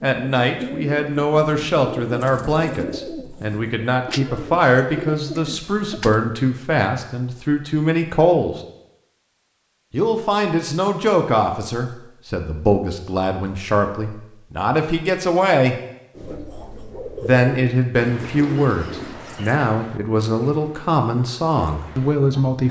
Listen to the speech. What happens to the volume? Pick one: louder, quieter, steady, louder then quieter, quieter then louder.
steady.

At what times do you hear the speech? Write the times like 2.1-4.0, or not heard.
0.0-8.6, 9.9-15.8, 17.2-22.6.